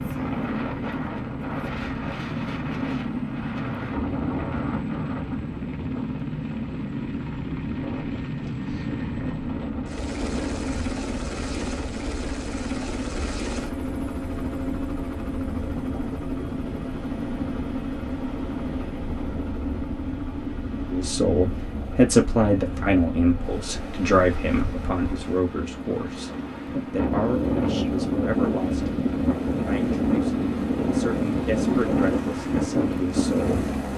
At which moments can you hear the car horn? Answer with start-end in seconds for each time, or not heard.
not heard.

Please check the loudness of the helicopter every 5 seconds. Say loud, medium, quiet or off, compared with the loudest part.
loud, loud, loud, loud, medium, medium, loud.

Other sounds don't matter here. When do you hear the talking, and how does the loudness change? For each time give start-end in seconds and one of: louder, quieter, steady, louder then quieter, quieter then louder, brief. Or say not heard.
20.9-33.6 quieter.